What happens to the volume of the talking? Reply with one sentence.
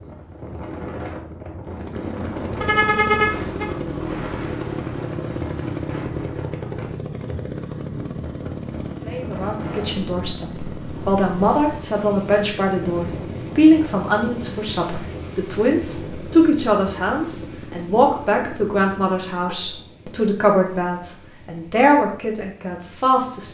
The volume of the talking stays about the same.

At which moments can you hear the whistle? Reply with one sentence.
You can't hear the whistle here.